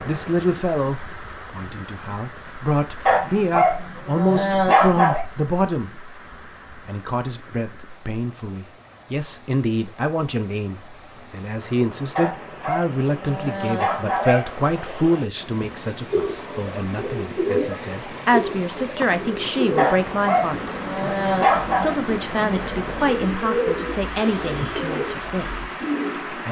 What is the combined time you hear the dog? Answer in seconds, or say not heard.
7 s.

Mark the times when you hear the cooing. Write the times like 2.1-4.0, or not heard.
15.6-26.4.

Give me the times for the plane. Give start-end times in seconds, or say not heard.
not heard.